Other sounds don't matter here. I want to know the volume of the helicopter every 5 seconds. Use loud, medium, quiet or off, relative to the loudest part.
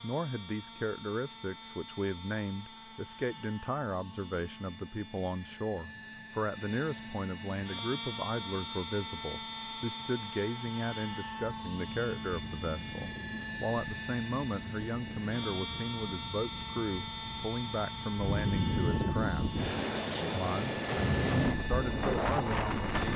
medium, loud, loud, loud, loud.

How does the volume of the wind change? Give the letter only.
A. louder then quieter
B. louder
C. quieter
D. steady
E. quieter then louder
B.